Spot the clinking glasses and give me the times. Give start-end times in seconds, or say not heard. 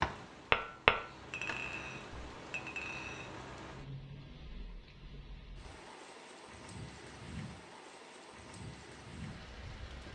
1.3-3.4.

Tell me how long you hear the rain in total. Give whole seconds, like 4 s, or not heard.
10 s.